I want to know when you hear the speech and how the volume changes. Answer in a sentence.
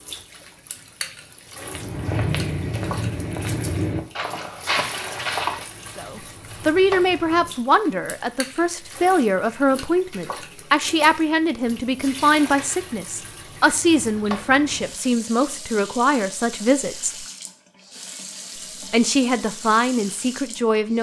The speech can be heard from 6.0 to 17.2 s, at a steady volume; and briefly from 18.9 to 20.9 s.